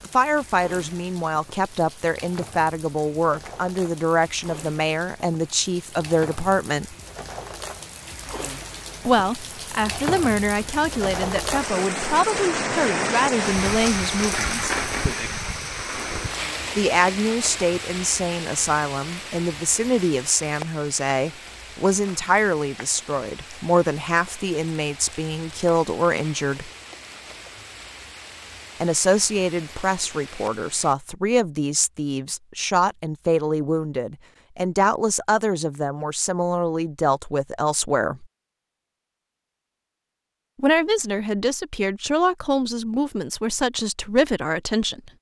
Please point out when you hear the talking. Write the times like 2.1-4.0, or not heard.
0.1-7.0, 9.1-14.7, 16.8-26.7, 28.8-38.2, 40.5-45.1.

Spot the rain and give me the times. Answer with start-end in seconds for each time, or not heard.
0.0-30.9.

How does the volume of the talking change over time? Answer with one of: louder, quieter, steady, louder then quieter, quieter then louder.
steady.